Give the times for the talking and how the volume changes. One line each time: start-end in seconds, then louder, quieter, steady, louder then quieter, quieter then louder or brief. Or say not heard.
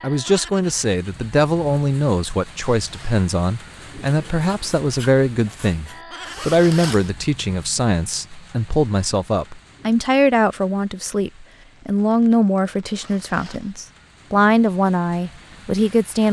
0.0-16.2 steady.